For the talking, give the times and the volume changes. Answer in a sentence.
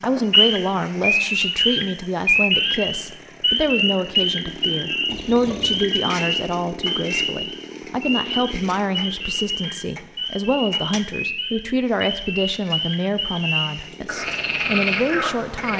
The talking can be heard from 0.0 to 15.7 s, at a steady volume.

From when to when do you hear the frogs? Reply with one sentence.
You can hear the frogs from 0.0 to 15.7 s.